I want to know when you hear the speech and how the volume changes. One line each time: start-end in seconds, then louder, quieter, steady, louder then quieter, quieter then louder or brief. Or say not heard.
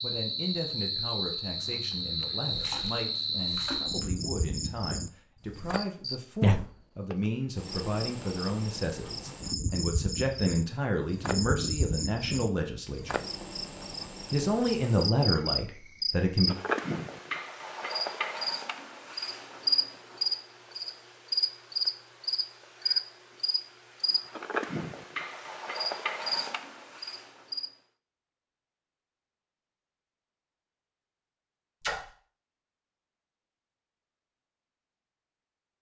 0.0-13.2 louder
14.3-16.6 brief.